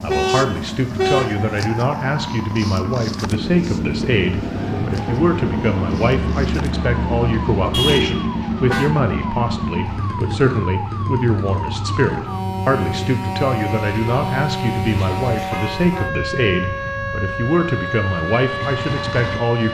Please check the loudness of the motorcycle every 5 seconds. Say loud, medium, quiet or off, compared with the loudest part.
loud, loud, medium, medium.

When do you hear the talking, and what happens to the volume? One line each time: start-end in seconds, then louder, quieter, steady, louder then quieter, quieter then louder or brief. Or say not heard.
0.0-19.7 steady.